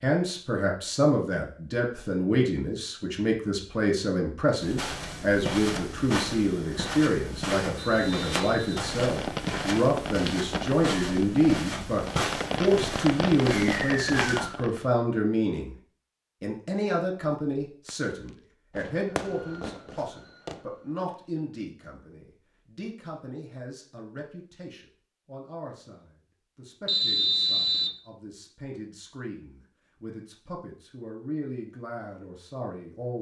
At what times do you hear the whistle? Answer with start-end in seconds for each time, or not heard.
7.8-8.8, 13.6-14.6, 26.9-27.9.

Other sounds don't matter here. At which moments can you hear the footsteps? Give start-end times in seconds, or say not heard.
4.6-14.5.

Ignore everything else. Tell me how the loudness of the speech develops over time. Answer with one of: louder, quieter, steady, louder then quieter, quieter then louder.
quieter.